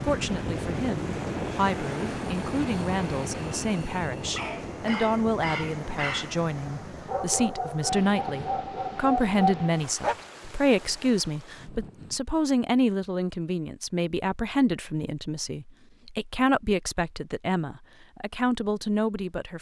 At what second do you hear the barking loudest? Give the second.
9 s.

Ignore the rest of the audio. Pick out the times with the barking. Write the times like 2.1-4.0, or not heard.
4.3-10.2.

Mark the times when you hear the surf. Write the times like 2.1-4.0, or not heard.
0.0-12.2.